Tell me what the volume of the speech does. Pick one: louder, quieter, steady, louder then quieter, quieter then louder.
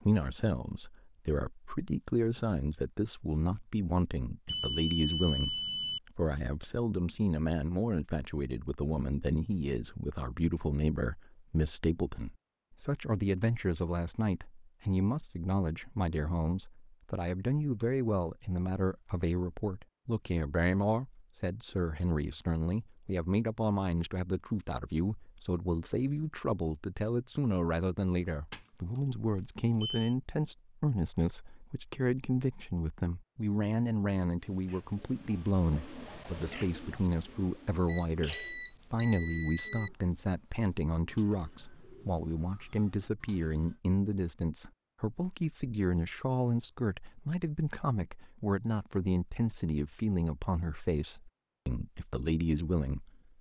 steady.